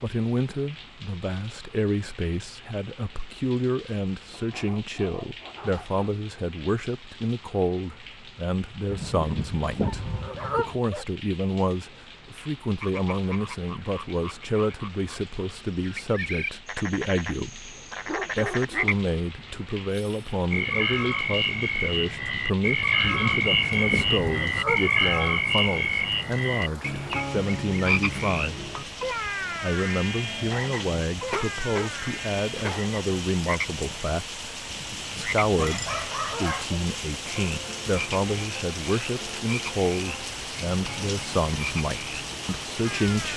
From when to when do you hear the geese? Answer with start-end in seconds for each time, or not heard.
8.9-10.8, 23.2-24.9, 34.7-36.5.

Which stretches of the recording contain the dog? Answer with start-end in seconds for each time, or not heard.
4.3-6.0, 9.8-11.1, 18.1-18.9, 31.2-32.8, 35.5-36.9.